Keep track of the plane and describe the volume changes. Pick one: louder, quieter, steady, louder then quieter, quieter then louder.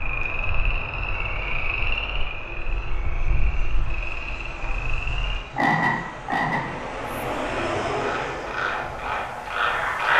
louder.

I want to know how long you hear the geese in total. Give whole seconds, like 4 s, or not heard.
not heard.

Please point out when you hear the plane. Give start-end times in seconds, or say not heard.
0.1-10.1.